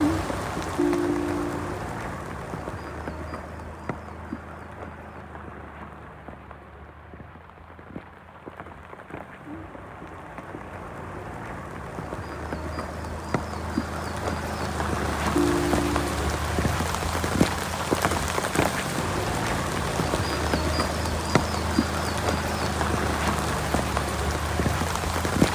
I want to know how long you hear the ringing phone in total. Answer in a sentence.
You can hear the ringing phone for 2 seconds altogether.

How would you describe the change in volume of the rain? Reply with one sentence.
The loudness of the rain goes down, then up.